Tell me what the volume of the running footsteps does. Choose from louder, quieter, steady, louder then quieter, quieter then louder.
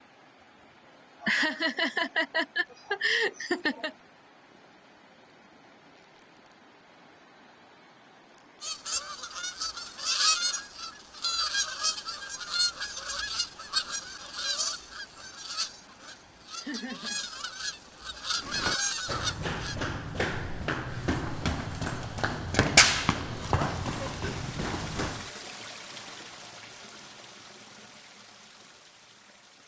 louder then quieter.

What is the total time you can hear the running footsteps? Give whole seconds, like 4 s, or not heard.
7 s.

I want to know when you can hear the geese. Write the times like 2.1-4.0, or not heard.
8.6-19.8.